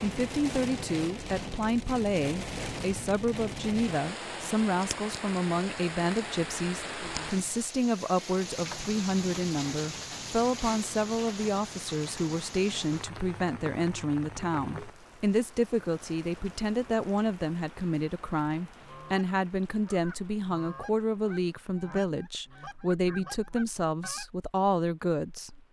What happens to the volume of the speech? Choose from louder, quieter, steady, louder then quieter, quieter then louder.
steady.